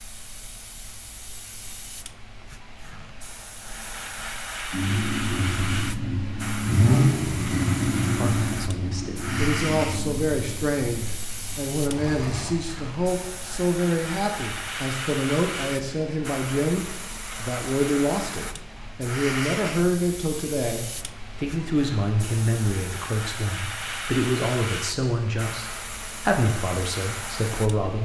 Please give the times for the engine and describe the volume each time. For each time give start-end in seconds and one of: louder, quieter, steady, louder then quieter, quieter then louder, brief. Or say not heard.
4.7-12.6 louder then quieter.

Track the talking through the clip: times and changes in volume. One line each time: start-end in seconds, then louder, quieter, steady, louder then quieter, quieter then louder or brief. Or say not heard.
8.2-28.0 steady.